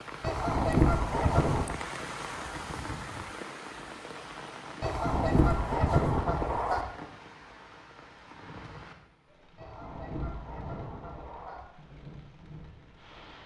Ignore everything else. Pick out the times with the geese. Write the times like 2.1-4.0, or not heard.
0.2-1.8, 4.8-6.8, 9.6-11.6.